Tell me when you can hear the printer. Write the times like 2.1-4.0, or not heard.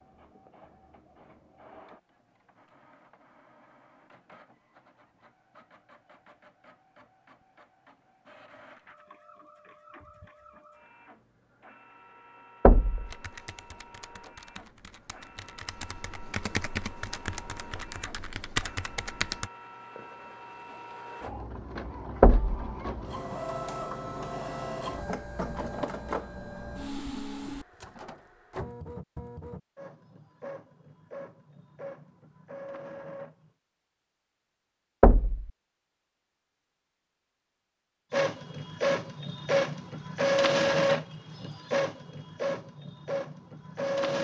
0.0-33.5, 38.1-44.1.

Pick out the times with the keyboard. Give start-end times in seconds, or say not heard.
13.1-19.5.